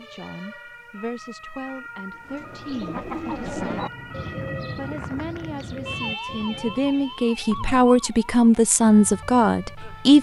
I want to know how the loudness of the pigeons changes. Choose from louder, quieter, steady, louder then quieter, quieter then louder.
quieter.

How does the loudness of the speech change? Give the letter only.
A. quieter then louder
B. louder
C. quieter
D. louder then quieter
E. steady
B.